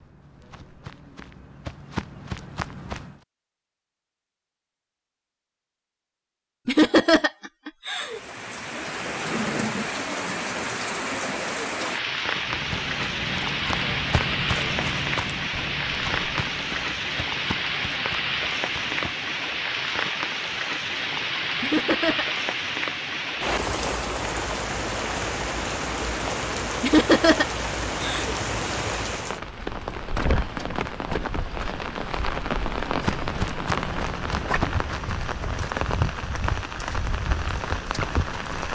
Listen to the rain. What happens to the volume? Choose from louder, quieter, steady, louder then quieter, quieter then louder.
steady.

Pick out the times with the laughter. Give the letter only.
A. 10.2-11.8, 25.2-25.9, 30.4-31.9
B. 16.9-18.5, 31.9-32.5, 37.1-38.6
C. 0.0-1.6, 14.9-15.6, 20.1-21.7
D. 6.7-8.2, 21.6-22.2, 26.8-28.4
D.